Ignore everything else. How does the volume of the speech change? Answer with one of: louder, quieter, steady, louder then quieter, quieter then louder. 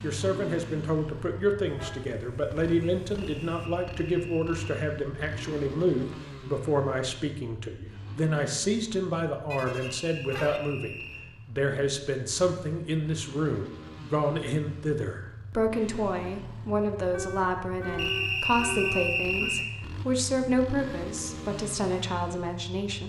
steady.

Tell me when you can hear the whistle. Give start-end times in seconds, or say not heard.
3.2-4.7, 9.9-11.2, 17.9-19.7.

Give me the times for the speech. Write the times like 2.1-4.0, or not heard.
0.0-23.0.